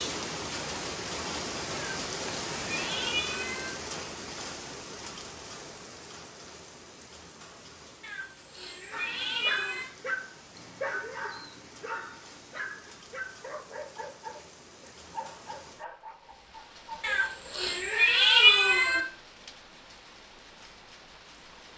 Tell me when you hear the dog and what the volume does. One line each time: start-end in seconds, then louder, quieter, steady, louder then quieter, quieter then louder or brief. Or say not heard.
8.9-17.6 quieter.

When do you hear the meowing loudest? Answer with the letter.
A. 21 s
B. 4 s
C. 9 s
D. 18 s
D.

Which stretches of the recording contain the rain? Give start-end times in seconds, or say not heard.
0.0-21.7.